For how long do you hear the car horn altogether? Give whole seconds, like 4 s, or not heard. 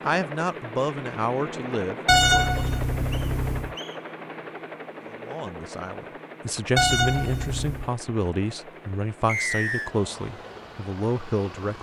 3 s.